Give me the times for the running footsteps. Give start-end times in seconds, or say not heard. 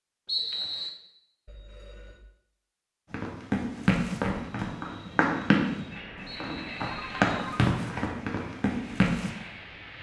3.1-9.3.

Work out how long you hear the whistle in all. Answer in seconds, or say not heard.
2 s.